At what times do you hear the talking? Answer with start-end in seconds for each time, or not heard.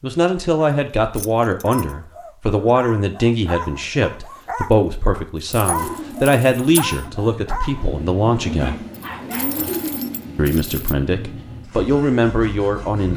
0.0-8.8, 10.3-13.1.